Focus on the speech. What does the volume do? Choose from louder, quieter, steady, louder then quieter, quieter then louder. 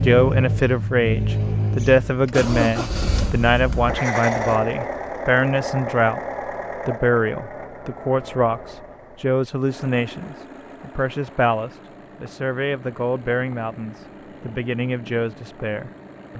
quieter.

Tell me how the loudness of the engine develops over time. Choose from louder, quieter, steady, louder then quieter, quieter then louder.
quieter.